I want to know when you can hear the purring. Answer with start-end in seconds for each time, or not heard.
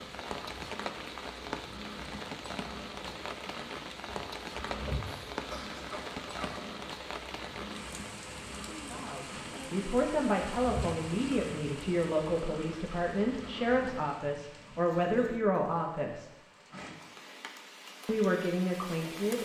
0.0-14.1.